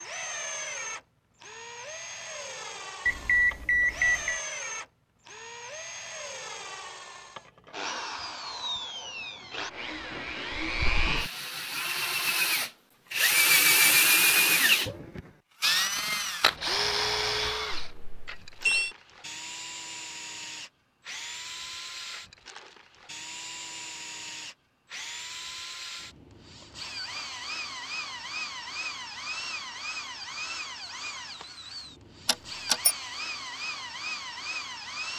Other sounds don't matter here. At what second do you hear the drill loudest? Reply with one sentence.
The loudest moment of the drill is at 14 seconds.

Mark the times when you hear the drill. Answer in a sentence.
The drill can be heard from 0.0 to 35.1 s.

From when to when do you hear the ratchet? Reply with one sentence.
You can't hear the ratchet here.